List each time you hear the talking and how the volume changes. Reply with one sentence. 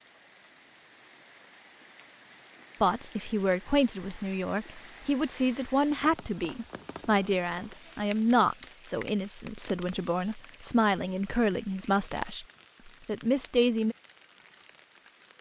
You can hear the talking from 2.8 to 13.9 s, at a steady volume.